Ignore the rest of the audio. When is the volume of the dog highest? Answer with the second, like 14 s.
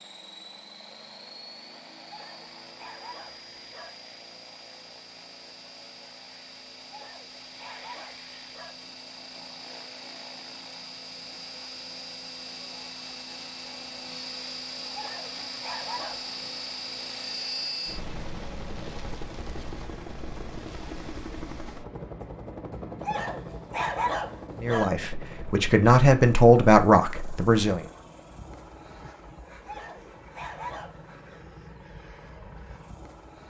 24 s.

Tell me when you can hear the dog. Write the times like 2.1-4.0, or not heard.
2.0-3.9, 6.8-8.8, 14.9-16.4, 23.0-24.9, 29.6-31.1.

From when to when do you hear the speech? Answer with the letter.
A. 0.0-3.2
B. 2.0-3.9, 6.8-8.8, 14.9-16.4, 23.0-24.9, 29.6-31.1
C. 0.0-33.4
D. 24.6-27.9
D.